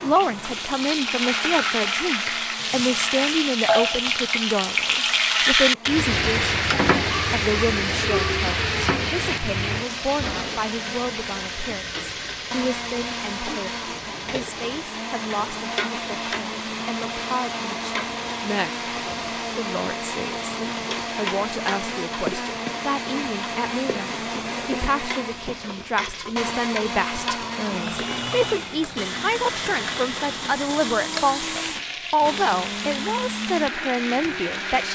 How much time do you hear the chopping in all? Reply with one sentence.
You can't hear the chopping here.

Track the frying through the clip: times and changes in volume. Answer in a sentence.
You can hear the frying from 0.0 to 34.9 s, getting quieter.